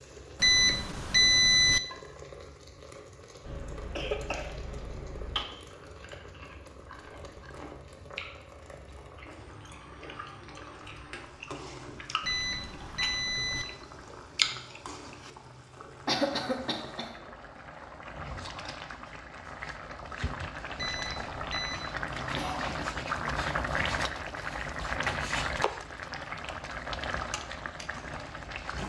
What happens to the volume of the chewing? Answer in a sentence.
The volume of the chewing goes up.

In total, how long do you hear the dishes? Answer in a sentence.
The dishes can't be heard in this clip.